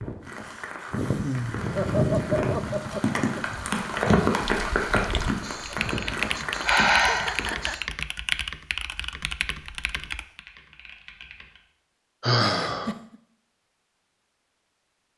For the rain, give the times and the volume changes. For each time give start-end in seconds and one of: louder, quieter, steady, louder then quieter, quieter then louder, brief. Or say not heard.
0.0-7.8 louder then quieter.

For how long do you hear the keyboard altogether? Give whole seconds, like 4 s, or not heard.
7 s.